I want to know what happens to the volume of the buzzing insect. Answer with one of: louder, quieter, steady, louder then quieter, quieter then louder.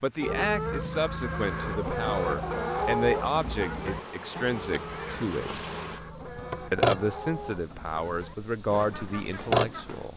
louder.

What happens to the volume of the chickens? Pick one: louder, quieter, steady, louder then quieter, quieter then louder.
quieter.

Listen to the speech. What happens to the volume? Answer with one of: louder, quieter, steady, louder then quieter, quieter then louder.
steady.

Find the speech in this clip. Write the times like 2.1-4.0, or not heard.
0.0-5.7, 6.7-10.1.